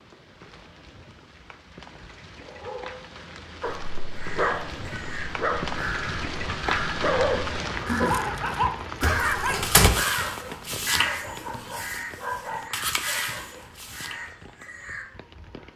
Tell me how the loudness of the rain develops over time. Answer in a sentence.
The loudness of the rain goes up, then down.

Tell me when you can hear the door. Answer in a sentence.
You can hear the door from 9.0 to 9.9 s.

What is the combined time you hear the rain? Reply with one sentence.
You can hear the rain for 16 seconds altogether.